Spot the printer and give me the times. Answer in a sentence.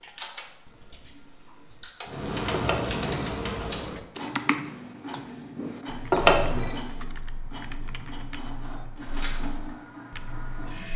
The printer can be heard from 2.0 to 10.9 s.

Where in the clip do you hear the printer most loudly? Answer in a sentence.
The loudest moment of the printer is at 3 seconds.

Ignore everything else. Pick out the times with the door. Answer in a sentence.
The door can't be heard in this clip.